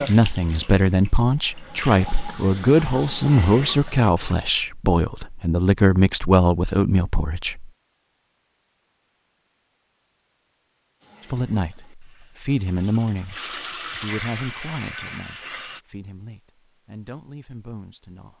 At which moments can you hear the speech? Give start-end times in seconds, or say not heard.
0.1-7.7, 11.3-18.3.